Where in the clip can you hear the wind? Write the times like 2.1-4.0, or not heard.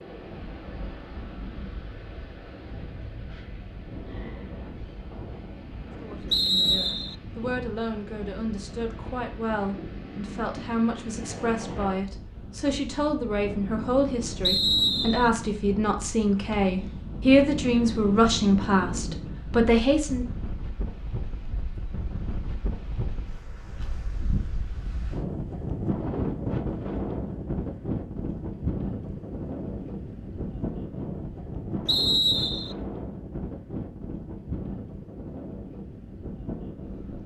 0.0-37.2.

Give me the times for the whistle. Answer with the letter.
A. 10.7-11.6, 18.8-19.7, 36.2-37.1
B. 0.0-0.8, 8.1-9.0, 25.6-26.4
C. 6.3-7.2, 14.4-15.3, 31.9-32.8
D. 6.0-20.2
C.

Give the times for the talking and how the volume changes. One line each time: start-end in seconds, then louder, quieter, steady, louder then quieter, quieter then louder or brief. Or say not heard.
6.0-20.2 louder.